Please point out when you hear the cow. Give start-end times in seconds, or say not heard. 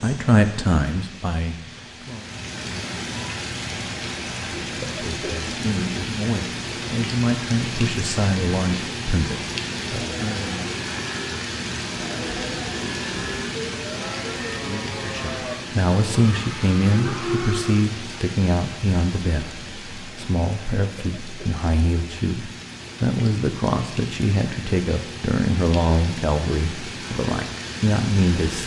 9.8-17.8.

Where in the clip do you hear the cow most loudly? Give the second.
17 s.